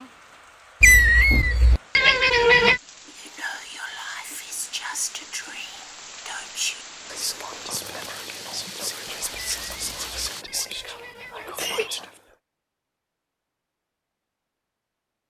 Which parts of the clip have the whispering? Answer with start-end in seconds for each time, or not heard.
3.1-12.2.